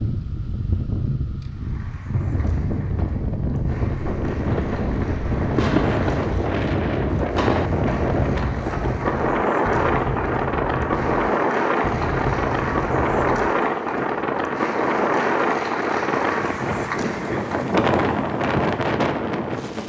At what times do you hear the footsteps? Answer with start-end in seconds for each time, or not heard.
not heard.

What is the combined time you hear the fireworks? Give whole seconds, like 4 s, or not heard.
9 s.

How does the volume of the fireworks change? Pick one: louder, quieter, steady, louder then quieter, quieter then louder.
steady.